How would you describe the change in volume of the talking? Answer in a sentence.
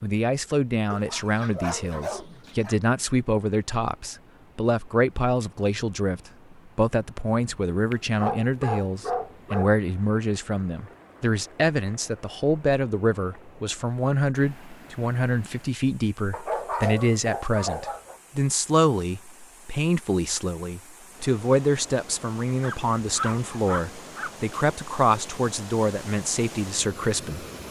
The volume of the talking stays about the same.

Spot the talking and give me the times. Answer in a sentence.
You can hear the talking from 0.0 to 27.4 s.